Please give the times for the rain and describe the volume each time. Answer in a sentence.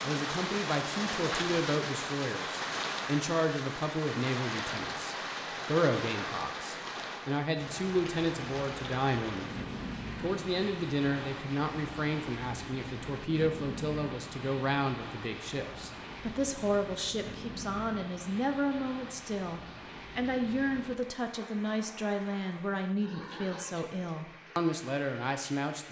You can hear the rain from 0.0 to 25.8 s, getting quieter.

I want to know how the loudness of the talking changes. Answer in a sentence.
The loudness of the talking stays about the same.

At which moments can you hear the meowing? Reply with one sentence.
You can't hear the meowing here.